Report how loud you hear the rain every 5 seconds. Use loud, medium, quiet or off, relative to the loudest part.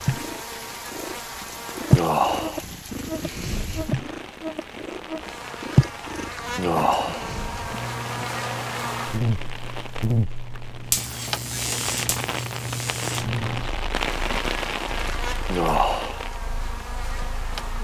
medium, medium, loud, medium.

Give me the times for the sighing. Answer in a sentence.
You can hear the sighing from 1.9 to 2.6 s, from 6.5 to 7.3 s and from 15.4 to 16.2 s.